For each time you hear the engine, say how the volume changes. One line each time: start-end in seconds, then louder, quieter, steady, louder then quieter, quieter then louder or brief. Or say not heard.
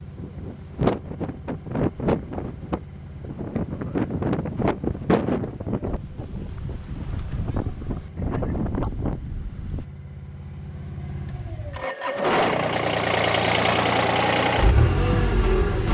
0.0-15.8 louder.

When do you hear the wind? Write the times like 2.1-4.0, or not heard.
0.0-9.8.